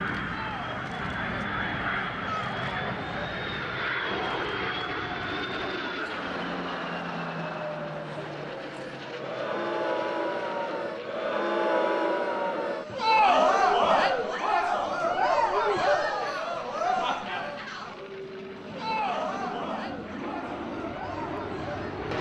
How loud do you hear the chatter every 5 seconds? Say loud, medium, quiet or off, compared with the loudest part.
quiet, medium, loud, loud, quiet.